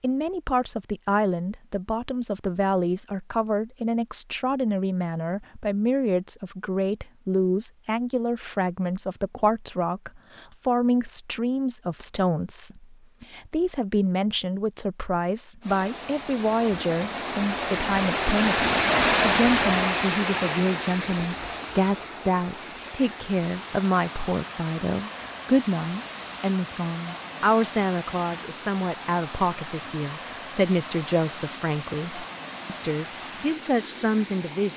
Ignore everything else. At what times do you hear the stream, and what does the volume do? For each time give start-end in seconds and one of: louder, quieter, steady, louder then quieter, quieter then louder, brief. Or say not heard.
15.6-34.7 quieter.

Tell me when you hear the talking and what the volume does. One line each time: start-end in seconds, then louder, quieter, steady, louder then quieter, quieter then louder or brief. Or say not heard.
0.0-34.7 steady.